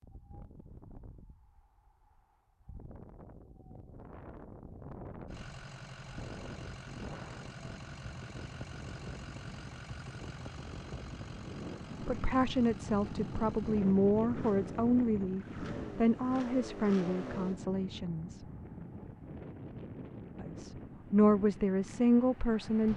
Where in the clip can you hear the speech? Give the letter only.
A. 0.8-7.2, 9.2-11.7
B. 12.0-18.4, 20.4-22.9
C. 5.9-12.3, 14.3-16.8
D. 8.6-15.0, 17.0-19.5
B.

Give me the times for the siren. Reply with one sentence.
The siren can't be heard in this clip.